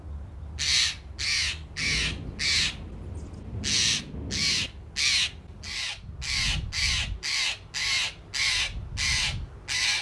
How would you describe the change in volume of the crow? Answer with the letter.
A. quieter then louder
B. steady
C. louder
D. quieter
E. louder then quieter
B.